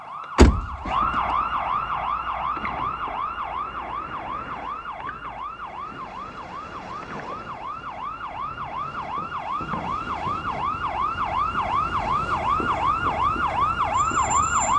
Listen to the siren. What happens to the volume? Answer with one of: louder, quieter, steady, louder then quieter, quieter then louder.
quieter then louder.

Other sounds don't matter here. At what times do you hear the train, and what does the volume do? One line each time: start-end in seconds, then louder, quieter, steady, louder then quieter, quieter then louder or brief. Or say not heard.
not heard.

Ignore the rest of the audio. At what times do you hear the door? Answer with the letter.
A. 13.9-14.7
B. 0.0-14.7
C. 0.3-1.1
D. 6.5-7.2
C.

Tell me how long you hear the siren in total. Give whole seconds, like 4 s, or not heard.
15 s.